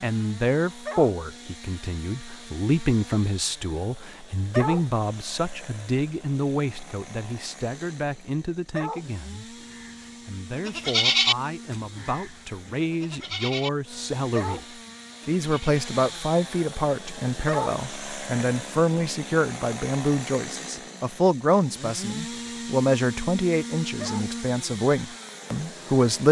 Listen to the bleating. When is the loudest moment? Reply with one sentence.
The volume of the bleating peaks at 11 seconds.